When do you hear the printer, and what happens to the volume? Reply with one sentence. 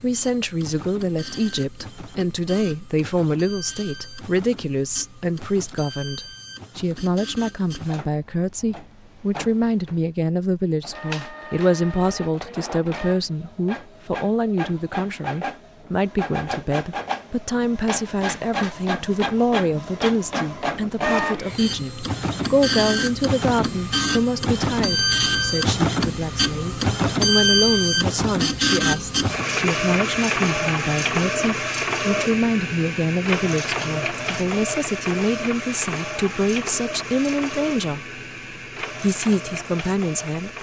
You can hear the printer from 0.0 to 40.5 s, getting louder then quieter.